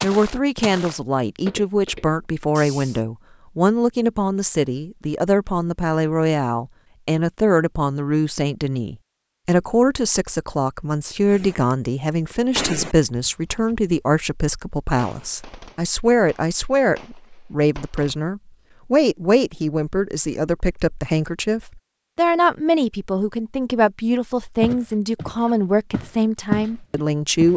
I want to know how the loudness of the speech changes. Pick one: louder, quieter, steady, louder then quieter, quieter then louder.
steady.